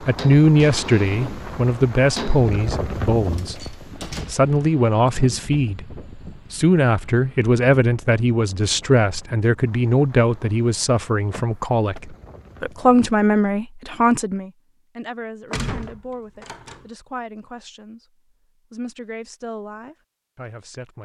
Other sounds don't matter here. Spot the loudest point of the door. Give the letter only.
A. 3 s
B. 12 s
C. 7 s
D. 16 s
D.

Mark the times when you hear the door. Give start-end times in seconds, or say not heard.
3.2-4.3, 11.3-12.0, 15.5-16.9.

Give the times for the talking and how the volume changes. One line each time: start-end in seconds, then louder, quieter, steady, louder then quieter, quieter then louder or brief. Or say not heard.
0.0-18.1 quieter
18.7-21.0 brief.